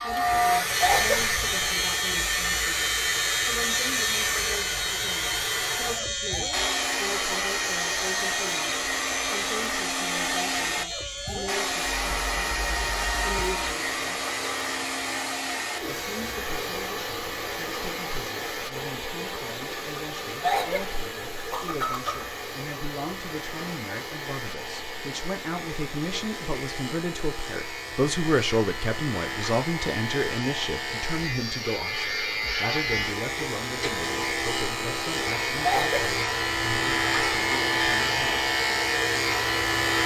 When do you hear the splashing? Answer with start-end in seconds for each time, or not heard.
not heard.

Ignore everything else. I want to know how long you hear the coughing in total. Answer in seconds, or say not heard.
3 s.